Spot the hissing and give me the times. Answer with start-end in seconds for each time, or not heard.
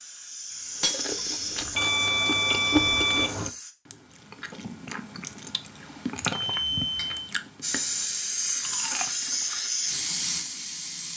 0.0-3.8, 7.6-11.1.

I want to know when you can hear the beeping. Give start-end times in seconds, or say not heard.
1.8-3.4, 6.2-7.3.